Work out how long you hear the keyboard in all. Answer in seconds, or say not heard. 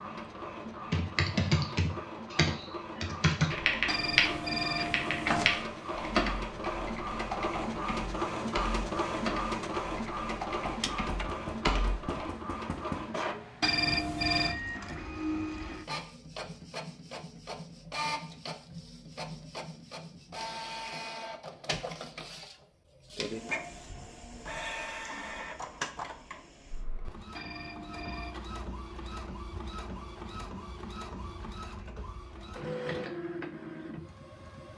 11 s.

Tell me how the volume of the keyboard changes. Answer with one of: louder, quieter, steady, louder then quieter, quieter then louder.
quieter.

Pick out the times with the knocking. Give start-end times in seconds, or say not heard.
10.7-13.1.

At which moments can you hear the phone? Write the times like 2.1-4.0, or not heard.
3.9-5.7, 13.6-14.6, 27.3-28.4.